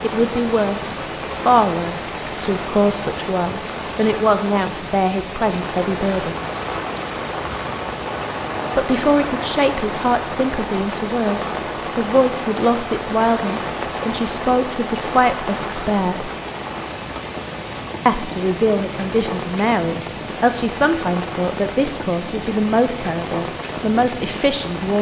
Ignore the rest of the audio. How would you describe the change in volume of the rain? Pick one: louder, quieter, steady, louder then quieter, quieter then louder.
steady.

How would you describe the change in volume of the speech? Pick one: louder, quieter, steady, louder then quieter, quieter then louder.
steady.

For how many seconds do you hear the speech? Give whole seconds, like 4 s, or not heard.
21 s.